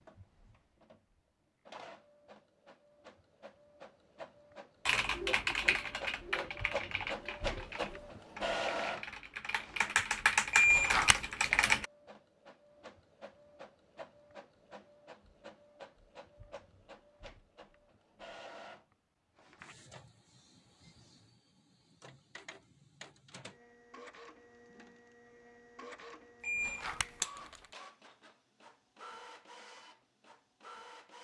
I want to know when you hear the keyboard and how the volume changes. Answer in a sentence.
The keyboard can be heard from 4.8 to 11.8 s, getting quieter then louder.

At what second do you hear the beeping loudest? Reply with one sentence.
The volume of the beeping peaks at 11 seconds.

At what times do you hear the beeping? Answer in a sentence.
You can hear the beeping from 10.5 to 11.2 s and from 26.4 to 27.6 s.